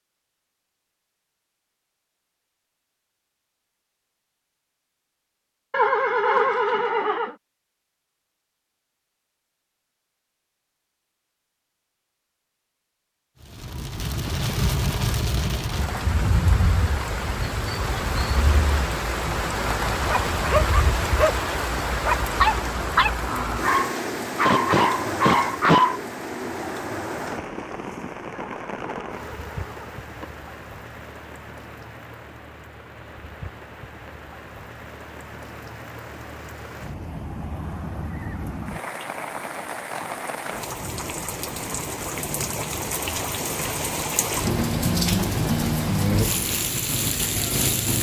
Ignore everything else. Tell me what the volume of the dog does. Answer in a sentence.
The volume of the dog stays about the same.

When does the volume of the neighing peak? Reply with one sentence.
The volume of the neighing peaks at 6 seconds.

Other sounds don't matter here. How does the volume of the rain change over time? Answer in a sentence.
The volume of the rain goes down, then up.